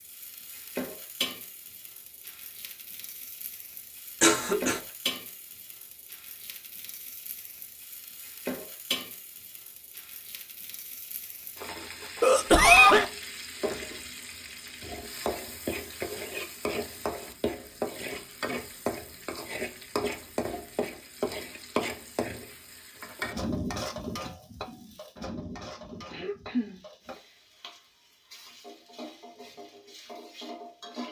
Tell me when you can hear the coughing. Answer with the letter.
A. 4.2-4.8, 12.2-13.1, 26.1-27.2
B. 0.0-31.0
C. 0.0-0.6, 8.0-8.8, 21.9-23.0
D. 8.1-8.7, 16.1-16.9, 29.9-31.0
A.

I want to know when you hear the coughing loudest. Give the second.
13 s.